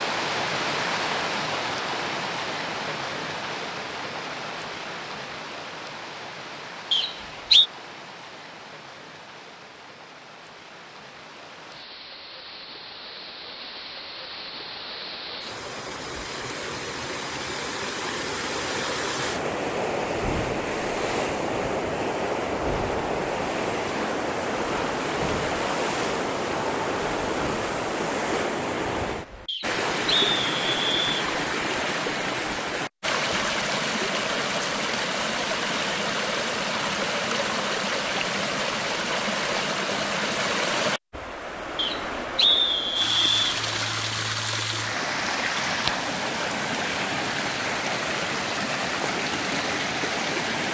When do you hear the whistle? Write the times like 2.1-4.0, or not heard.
6.9-7.7, 29.4-31.1, 41.8-43.4.